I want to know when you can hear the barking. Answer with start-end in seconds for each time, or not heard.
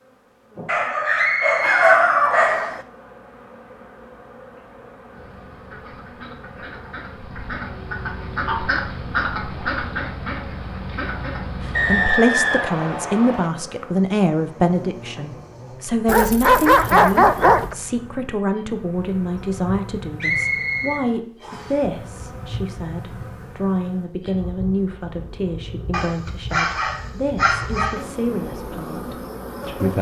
0.7-2.8, 16.1-17.8, 25.9-28.1.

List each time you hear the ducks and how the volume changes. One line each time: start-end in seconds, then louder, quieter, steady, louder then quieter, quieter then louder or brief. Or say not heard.
5.1-12.1 louder then quieter.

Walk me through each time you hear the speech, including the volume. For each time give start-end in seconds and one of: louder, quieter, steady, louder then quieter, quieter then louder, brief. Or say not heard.
11.6-29.9 quieter.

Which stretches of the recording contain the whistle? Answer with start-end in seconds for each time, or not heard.
1.1-2.8, 11.7-13.5, 20.2-21.8.